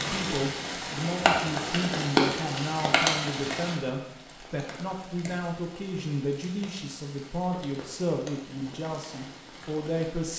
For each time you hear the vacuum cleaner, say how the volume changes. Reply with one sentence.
The vacuum cleaner can't be heard in this clip.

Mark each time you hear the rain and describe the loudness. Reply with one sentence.
The rain can be heard from 0.0 to 10.3 s, getting quieter.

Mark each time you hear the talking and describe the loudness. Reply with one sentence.
The talking can be heard from 0.0 to 10.3 s, at a steady volume.